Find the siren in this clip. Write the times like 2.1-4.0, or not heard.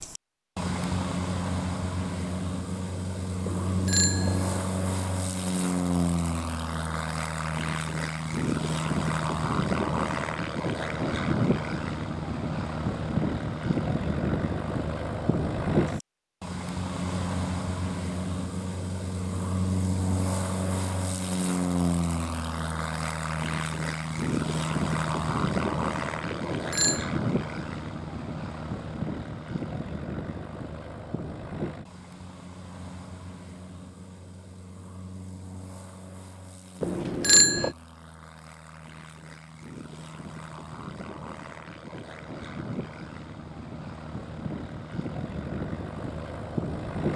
not heard.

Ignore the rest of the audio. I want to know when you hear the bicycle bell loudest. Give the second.
37 s.